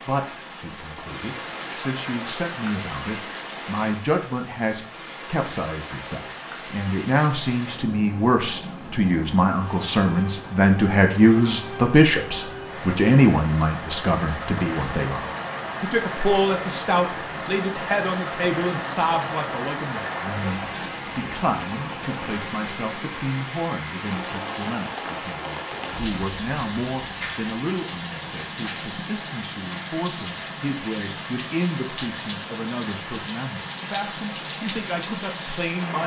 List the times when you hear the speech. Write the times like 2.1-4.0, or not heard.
0.1-36.0.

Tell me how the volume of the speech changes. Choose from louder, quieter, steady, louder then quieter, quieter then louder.
louder then quieter.